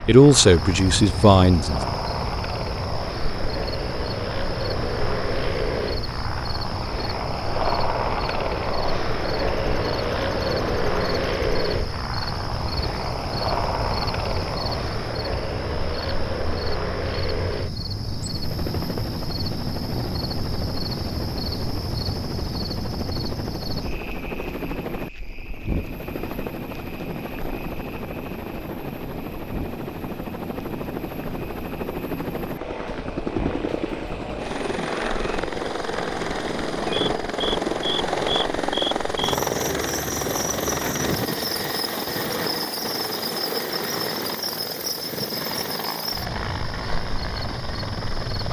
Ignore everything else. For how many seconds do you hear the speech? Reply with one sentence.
The speech can be heard for 2 seconds in total.